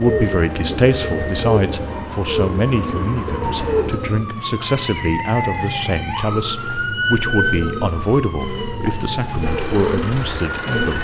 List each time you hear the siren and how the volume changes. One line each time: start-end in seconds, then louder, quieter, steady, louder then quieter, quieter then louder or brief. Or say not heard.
0.0-10.9 louder then quieter.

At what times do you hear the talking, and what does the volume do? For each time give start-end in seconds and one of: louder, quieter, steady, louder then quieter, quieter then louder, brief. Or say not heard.
0.0-10.9 steady.